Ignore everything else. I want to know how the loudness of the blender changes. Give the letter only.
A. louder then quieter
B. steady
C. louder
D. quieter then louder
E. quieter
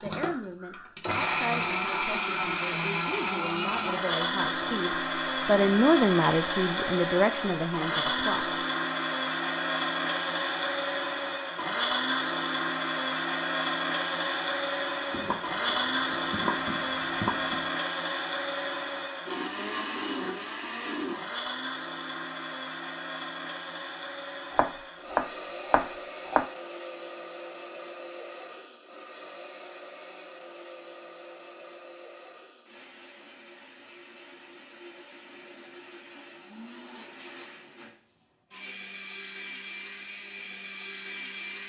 E.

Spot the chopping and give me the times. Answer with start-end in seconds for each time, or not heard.
15.1-17.6, 24.5-26.4.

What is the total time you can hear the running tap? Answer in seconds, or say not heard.
not heard.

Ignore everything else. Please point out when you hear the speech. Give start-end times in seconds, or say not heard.
0.0-8.6.